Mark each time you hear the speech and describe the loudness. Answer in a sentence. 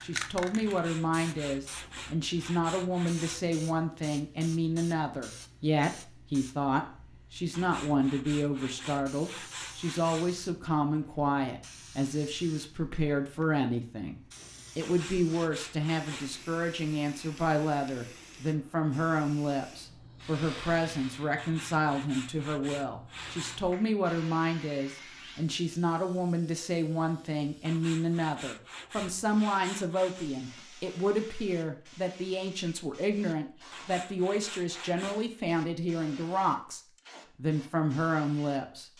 You can hear the speech from 0.0 to 38.9 s, at a steady volume.